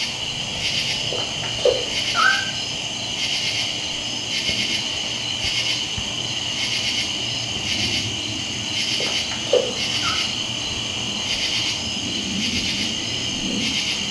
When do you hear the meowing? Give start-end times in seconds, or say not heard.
1.1-2.5, 9.0-10.2.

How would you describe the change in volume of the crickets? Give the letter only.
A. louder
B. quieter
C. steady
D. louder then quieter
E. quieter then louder
C.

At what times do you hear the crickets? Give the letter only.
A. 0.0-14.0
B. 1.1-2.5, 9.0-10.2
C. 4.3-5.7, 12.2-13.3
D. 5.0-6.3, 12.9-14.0
A.